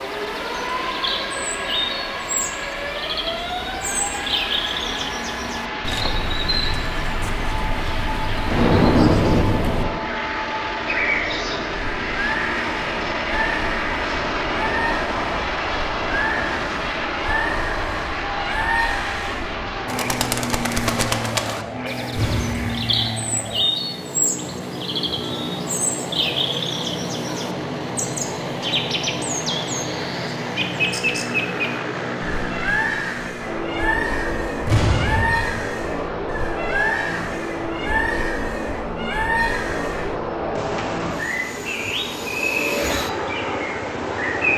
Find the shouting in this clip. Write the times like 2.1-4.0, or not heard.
not heard.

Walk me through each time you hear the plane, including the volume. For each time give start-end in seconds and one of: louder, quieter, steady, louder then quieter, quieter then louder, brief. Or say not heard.
0.0-44.5 steady.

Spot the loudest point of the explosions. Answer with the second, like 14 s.
9 s.